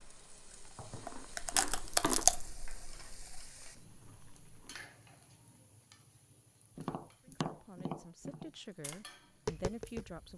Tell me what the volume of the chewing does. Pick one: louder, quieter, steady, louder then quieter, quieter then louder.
louder then quieter.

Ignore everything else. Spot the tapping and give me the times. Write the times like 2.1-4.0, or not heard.
6.8-10.2.